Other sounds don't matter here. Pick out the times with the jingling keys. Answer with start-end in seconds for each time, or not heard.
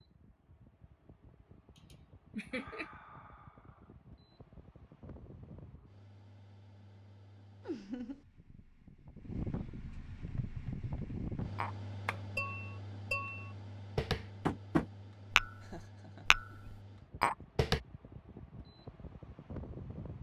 not heard.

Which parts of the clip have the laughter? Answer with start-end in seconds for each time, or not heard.
1.8-2.9, 7.6-8.2, 15.6-16.6.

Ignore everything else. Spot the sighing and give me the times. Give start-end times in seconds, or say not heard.
2.5-4.0.